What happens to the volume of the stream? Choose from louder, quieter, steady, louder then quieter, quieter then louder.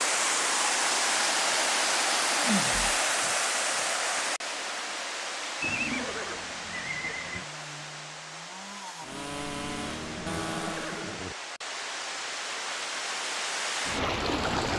quieter then louder.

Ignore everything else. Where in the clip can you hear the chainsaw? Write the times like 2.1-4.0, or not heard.
7.3-11.1.